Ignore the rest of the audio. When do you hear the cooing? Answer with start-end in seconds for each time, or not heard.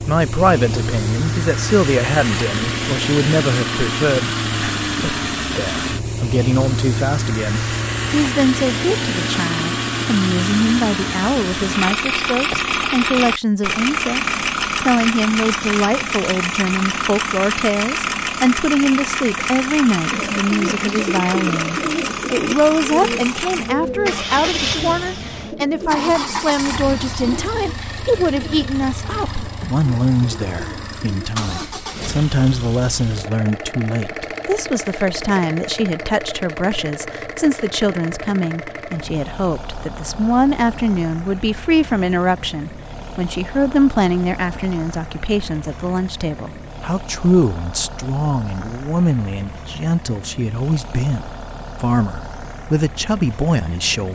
20.1-31.3.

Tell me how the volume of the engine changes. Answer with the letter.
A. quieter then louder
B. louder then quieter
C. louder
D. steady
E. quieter
E.